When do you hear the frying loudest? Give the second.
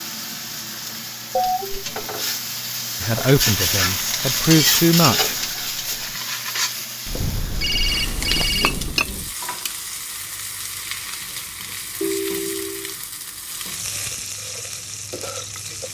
5 s.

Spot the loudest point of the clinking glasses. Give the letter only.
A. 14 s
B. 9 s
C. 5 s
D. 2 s
B.